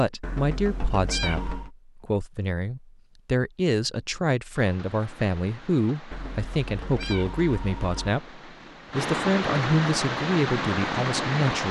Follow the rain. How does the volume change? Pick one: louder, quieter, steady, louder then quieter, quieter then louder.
louder.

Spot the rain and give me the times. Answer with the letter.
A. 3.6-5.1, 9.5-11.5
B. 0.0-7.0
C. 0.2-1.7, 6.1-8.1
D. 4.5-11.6
D.